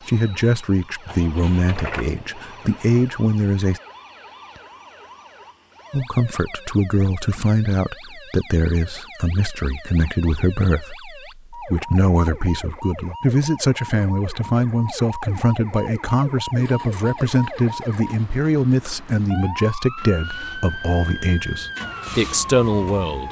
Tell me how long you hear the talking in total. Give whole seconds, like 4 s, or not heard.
21 s.